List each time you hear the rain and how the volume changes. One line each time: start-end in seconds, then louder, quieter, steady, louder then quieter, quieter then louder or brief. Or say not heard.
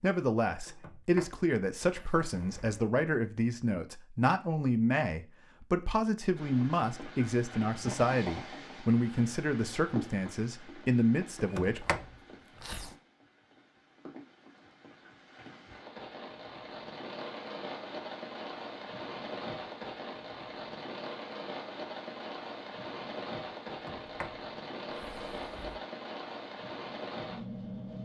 6.3-28.0 quieter then louder.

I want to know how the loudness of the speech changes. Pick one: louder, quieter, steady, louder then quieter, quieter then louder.
steady.